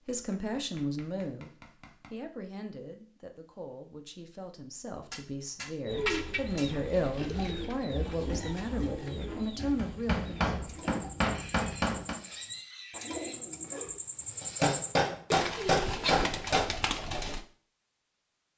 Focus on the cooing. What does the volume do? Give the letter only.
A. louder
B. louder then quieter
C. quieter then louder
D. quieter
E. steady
C.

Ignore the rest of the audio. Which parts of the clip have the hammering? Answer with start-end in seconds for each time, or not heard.
0.1-2.1, 5.0-6.7, 9.8-12.2, 14.4-16.7.